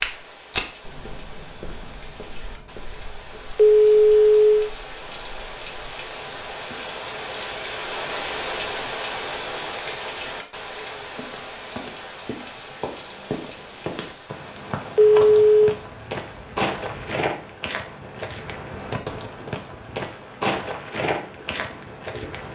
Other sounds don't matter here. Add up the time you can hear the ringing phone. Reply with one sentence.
You can hear the ringing phone for 2 seconds altogether.